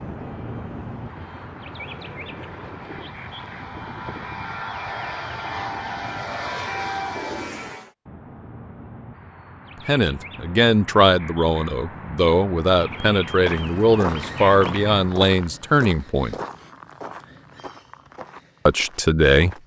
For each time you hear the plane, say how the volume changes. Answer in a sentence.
The plane can be heard from 0.0 to 7.9 s, getting louder.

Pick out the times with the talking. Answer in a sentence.
You can hear the talking from 9.8 to 16.4 s and from 18.6 to 19.6 s.